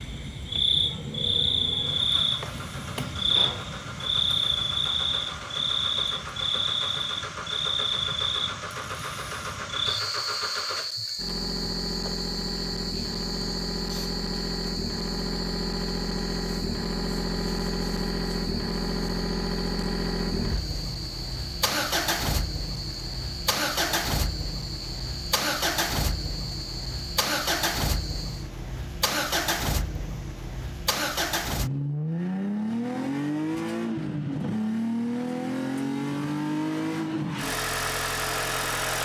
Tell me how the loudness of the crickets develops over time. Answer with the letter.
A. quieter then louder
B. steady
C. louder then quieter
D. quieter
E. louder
D.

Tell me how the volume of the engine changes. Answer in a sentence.
The loudness of the engine goes up.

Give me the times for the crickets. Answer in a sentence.
The crickets can be heard from 0.0 to 28.5 s.